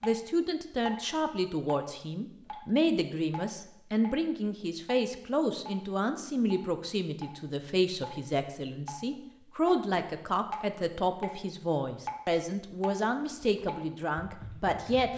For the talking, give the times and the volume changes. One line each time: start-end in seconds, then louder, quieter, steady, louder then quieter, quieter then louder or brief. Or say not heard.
0.0-15.1 steady.